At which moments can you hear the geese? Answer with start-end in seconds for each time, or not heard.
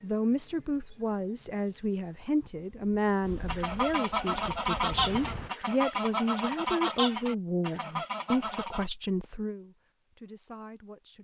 3.5-8.9.